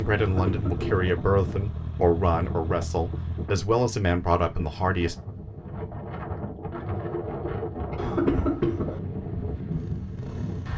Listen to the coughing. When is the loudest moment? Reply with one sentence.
The loudest moment of the coughing is at 8 seconds.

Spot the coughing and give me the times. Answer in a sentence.
The coughing can be heard from 0.1 to 1.1 s and from 8.0 to 9.0 s.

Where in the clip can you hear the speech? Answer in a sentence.
You can hear the speech from 0.0 to 5.2 s.